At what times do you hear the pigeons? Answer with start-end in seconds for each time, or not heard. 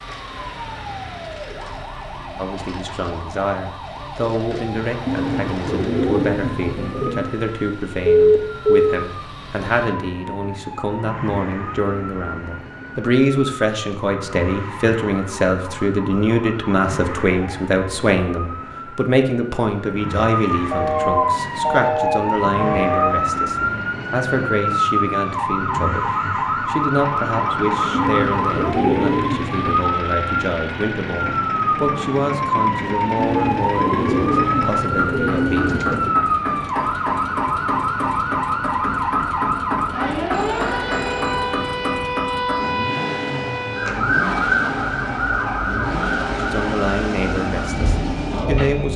5.0-7.3, 27.9-29.9, 33.1-36.2.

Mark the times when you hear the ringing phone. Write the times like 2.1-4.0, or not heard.
8.1-8.9, 20.7-23.1, 40.3-41.4.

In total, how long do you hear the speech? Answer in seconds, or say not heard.
36 s.